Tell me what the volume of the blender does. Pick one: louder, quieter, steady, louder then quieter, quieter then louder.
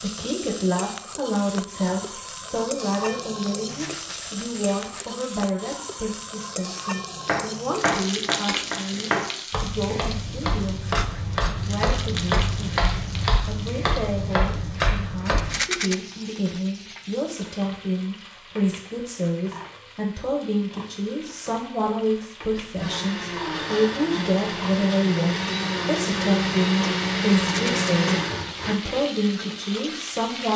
louder.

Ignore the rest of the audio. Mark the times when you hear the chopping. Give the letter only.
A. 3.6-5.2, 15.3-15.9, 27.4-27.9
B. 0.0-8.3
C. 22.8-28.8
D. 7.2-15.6
D.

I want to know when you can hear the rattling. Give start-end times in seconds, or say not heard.
3.6-5.2, 15.3-15.9, 27.4-27.9.